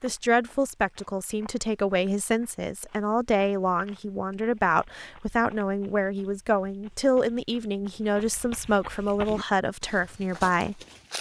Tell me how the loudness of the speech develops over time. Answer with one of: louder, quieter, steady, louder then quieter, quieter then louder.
steady.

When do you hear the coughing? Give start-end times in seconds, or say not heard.
not heard.